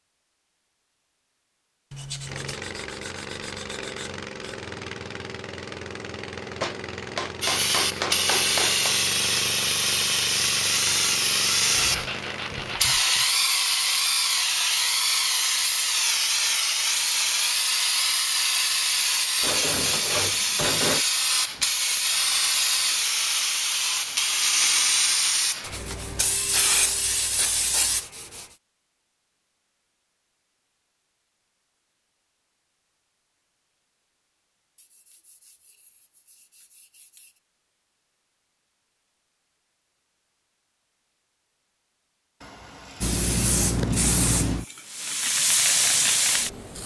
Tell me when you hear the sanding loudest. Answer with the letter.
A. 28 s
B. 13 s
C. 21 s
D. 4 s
C.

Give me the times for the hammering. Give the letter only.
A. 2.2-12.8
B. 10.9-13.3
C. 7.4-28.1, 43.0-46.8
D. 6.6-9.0
D.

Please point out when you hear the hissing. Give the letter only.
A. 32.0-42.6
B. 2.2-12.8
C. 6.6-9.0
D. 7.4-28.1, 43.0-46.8
D.